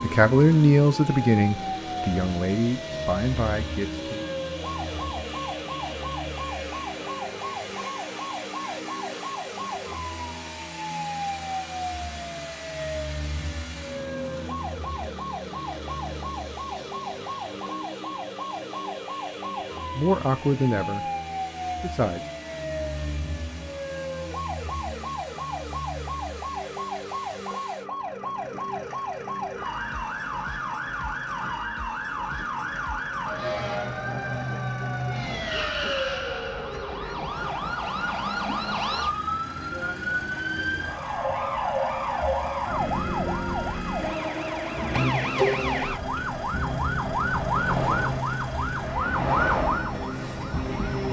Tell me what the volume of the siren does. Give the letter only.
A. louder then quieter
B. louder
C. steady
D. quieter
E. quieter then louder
B.